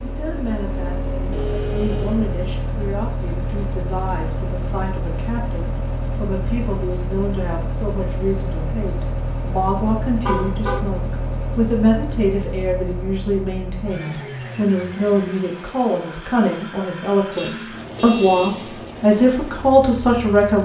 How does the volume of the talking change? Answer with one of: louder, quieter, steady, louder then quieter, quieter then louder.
louder.